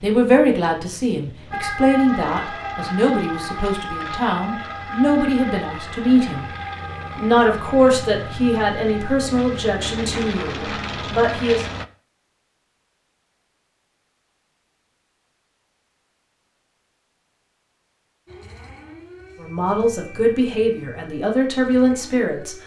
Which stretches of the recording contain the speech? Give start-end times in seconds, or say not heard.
0.0-6.5, 7.2-11.7, 19.4-22.6.